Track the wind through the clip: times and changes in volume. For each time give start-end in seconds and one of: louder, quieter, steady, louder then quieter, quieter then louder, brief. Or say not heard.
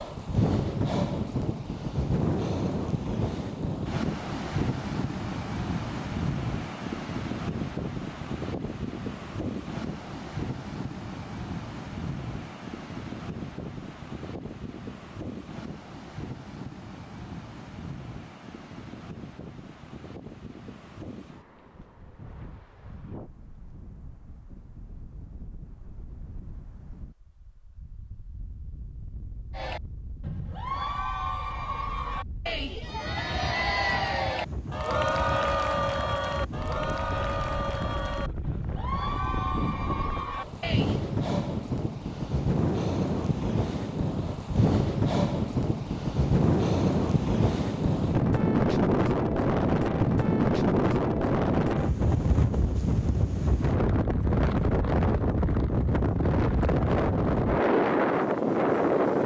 0.0-59.2 quieter then louder.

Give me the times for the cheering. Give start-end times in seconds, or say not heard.
29.5-41.0.